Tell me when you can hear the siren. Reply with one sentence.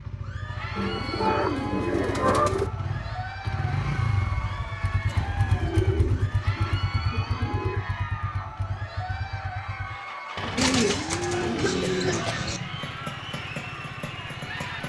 You can't hear the siren here.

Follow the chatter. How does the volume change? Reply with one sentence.
The loudness of the chatter stays about the same.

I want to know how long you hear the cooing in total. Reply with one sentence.
The cooing can be heard for 7 seconds in total.